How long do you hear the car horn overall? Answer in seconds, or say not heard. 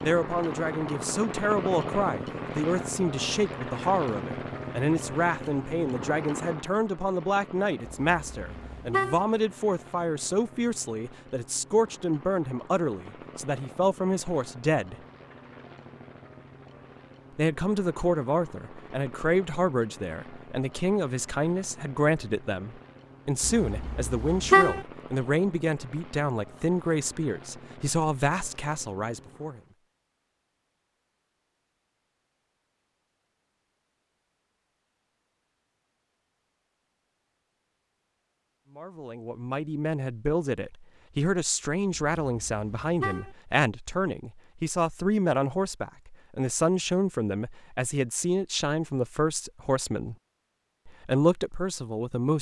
4 s.